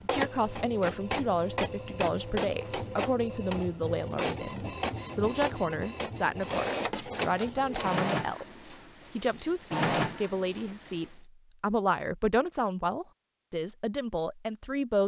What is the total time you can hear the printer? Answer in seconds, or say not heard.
11 s.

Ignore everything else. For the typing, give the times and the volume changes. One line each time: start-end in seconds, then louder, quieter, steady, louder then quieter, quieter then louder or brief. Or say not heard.
not heard.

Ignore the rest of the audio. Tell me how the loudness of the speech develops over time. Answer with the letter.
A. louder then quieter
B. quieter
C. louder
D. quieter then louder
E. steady
E.